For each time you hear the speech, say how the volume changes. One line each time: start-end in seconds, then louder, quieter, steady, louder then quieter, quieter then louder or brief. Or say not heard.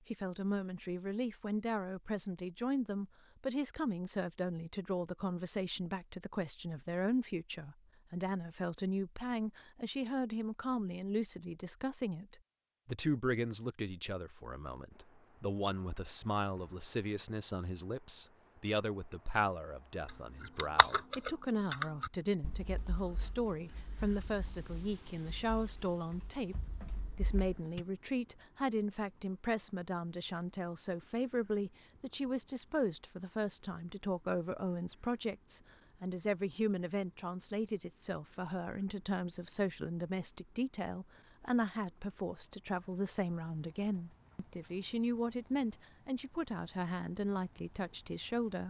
0.1-48.6 steady.